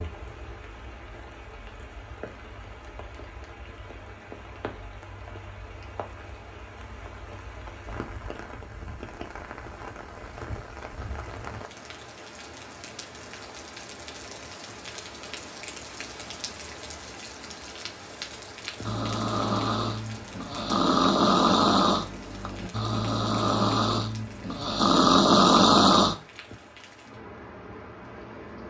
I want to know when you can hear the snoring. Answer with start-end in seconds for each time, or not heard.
18.8-26.1.